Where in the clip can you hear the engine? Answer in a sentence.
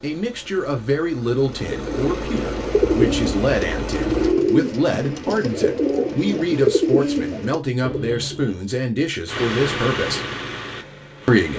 The engine can be heard from 0.0 to 4.3 s and from 9.2 to 11.5 s.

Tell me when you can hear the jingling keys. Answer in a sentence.
The jingling keys can't be heard in this clip.